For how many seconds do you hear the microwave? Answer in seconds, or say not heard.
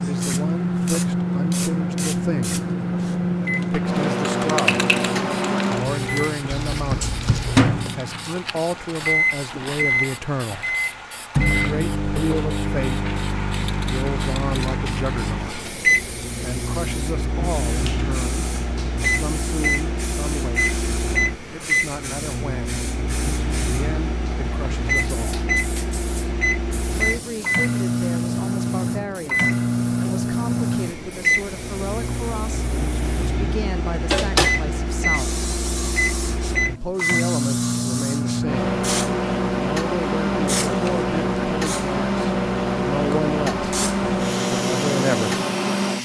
46 s.